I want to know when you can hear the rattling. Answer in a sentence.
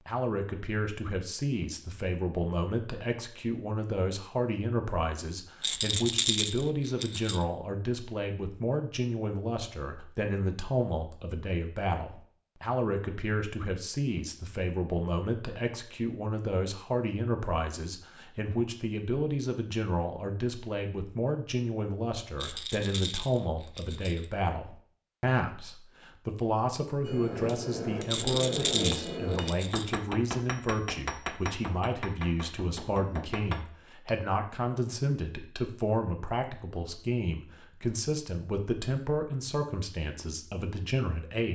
You can hear the rattling from 5.6 to 7.4 s, from 22.4 to 24.2 s and from 28.1 to 29.9 s.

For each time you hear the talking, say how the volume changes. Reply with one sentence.
The talking can be heard from 0.1 to 41.5 s, at a steady volume.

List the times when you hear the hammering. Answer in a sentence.
You can hear the hammering from 27.1 to 34.1 s.